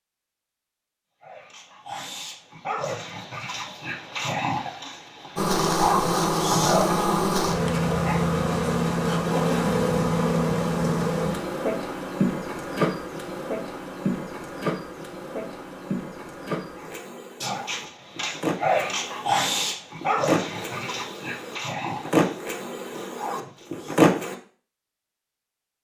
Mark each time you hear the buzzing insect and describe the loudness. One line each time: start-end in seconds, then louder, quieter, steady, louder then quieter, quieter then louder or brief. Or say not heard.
5.3-24.4 quieter then louder.